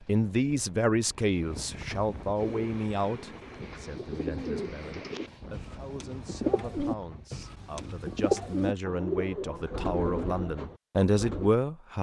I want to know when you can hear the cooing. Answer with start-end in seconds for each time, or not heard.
2.4-11.5.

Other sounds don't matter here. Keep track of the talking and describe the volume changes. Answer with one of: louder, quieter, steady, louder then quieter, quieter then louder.
quieter then louder.